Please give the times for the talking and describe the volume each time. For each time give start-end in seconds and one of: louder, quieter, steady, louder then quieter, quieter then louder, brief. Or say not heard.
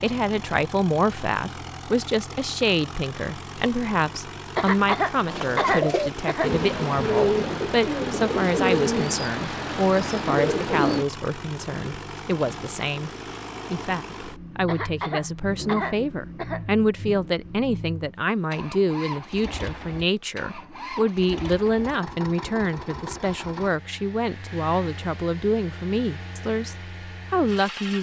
0.0-13.1 steady
13.7-27.9 steady.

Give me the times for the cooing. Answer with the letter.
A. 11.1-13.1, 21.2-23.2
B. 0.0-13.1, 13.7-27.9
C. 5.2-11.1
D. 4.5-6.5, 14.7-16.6
C.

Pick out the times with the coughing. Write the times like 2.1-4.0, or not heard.
4.5-6.5, 14.7-16.6.